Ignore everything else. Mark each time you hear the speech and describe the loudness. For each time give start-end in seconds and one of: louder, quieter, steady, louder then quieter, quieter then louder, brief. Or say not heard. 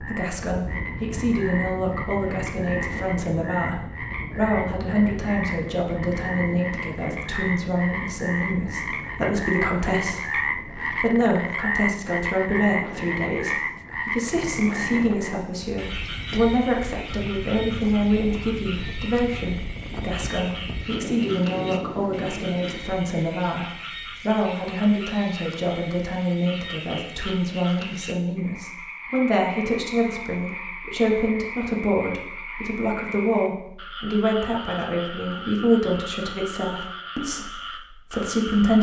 0.0-38.7 steady.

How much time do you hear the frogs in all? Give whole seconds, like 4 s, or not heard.
39 s.